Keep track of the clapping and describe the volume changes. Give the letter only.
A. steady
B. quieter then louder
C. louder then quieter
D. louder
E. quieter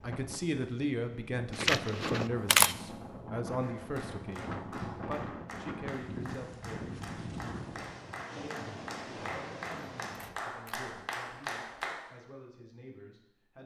D.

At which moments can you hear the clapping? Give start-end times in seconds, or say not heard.
3.6-12.0.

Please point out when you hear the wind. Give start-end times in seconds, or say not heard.
0.0-10.3.